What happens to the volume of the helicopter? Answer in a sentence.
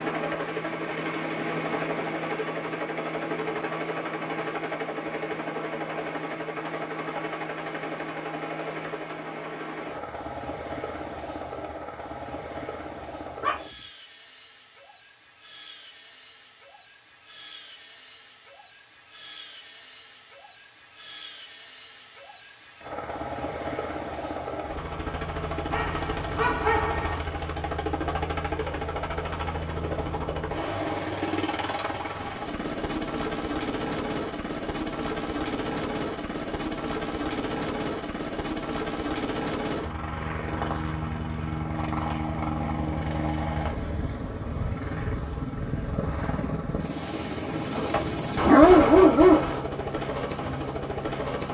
The loudness of the helicopter goes down, then up.